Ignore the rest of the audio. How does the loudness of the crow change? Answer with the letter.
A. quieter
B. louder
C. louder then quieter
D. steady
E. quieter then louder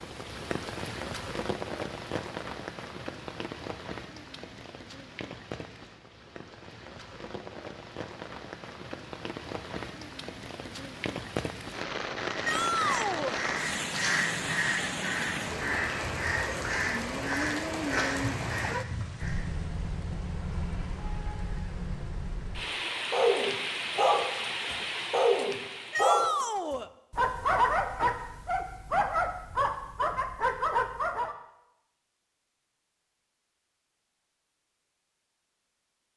D.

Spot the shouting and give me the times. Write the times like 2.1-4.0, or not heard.
12.4-13.4, 25.9-26.9.